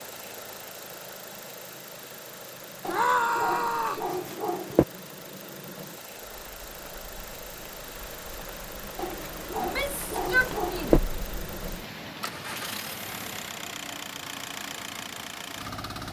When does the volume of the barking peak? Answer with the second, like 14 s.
11 s.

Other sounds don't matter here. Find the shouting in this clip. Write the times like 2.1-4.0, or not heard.
2.9-4.0, 9.6-11.0.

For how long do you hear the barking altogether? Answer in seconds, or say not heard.
4 s.